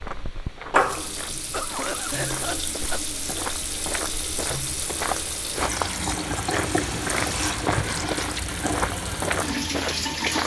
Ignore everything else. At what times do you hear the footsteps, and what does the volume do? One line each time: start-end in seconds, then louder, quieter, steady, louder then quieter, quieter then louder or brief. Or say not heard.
0.0-10.4 louder.